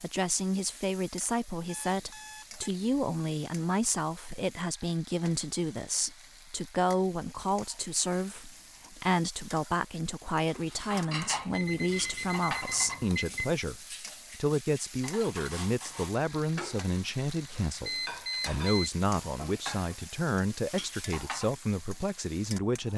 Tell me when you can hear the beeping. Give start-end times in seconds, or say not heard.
1.6-3.0, 11.5-13.6, 17.9-18.9.